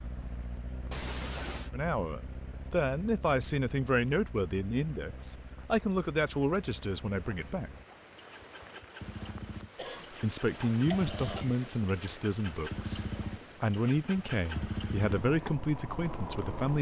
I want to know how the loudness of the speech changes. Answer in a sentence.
The loudness of the speech stays about the same.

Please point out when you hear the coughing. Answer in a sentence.
You can hear the coughing from 0.9 to 1.7 s and from 9.8 to 11.6 s.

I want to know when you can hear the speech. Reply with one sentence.
The speech can be heard from 1.7 to 7.7 s and from 10.1 to 16.7 s.